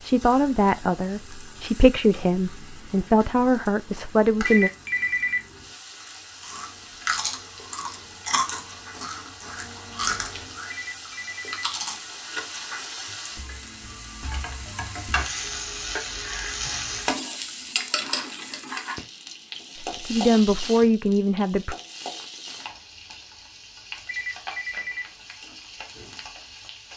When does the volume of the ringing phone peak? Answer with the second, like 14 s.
5 s.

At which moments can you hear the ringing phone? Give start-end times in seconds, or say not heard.
4.4-5.5, 10.7-11.7, 24.1-25.1.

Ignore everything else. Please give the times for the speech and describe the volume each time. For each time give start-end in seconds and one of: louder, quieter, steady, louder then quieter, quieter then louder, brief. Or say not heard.
0.0-4.7 steady
19.8-21.8 brief.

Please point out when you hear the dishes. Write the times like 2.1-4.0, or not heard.
not heard.